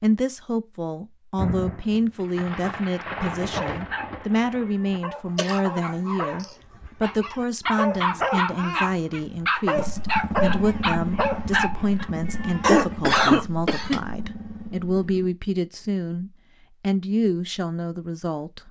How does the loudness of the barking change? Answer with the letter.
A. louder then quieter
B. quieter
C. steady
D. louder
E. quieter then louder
D.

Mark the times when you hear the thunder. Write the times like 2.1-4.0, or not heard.
1.4-5.0.